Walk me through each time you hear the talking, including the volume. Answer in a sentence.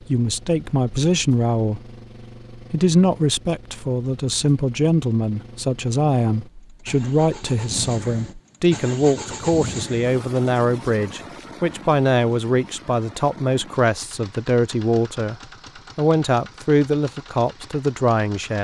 You can hear the talking briefly from 0.1 to 1.9 s; from 2.6 to 15.3 s, at a steady volume; and briefly from 15.9 to 18.5 s.